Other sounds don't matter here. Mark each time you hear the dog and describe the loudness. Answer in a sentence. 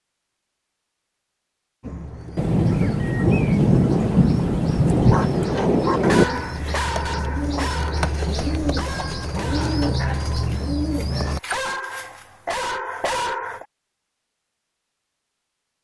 The dog can be heard from 5.0 to 13.7 s, getting quieter then louder.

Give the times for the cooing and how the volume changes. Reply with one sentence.
You can hear the cooing from 1.8 to 11.4 s, getting louder.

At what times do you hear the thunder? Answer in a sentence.
You can hear the thunder from 2.4 to 6.2 s.